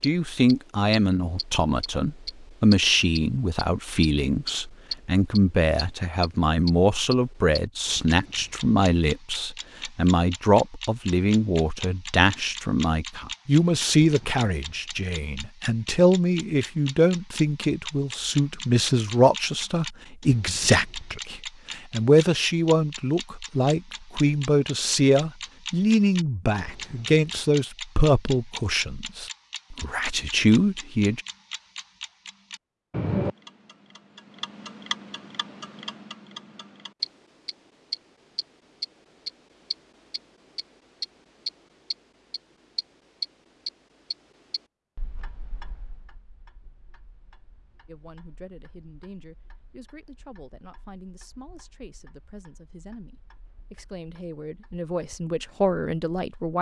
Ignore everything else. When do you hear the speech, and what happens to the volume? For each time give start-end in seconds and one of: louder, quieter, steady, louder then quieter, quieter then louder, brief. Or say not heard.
0.0-31.2 steady
47.9-56.5 louder.